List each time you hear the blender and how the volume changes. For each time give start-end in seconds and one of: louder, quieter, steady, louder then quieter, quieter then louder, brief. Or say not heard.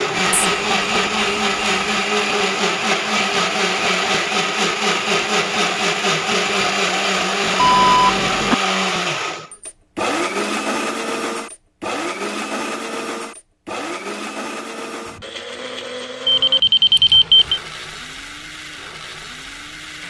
0.0-20.0 quieter.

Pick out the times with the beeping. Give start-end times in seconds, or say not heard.
0.3-2.0, 7.5-8.6, 16.2-17.6.